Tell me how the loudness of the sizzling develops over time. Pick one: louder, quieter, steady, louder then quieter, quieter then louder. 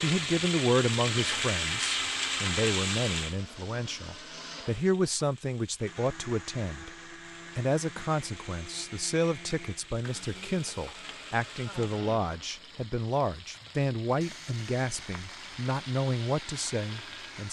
quieter then louder.